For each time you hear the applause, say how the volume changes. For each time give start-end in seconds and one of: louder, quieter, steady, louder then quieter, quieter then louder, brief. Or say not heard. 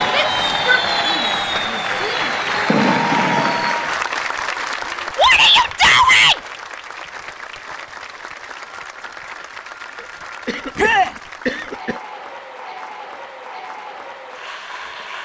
0.0-15.2 quieter.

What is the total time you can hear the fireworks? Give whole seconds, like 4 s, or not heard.
4 s.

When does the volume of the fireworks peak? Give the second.
3 s.